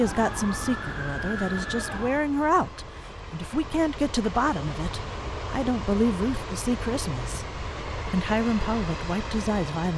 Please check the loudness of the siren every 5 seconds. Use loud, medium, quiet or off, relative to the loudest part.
loud, off.